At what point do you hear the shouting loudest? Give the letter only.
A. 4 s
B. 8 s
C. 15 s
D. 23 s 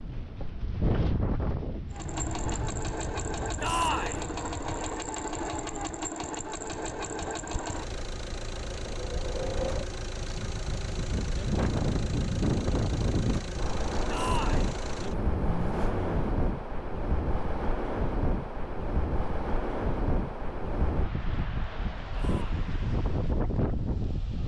A.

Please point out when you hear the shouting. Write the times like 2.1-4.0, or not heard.
3.6-4.2, 14.1-14.7, 22.1-22.6.